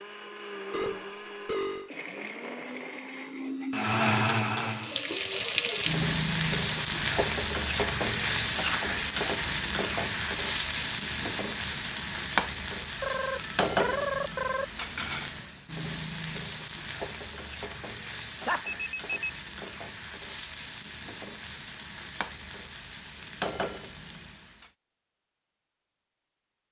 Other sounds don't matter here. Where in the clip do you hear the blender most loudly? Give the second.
4 s.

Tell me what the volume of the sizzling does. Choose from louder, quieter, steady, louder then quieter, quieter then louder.
quieter.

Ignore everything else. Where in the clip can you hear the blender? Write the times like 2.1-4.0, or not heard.
0.0-5.0.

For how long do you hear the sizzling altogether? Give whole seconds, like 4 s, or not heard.
20 s.